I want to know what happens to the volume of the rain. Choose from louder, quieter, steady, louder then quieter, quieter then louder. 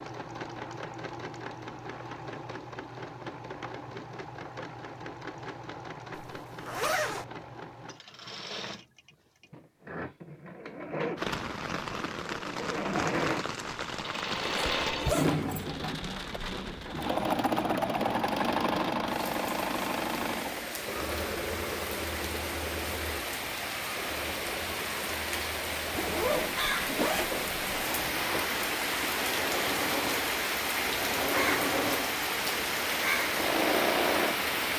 louder.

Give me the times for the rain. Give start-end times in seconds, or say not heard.
11.2-34.7.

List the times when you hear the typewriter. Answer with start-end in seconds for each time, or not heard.
not heard.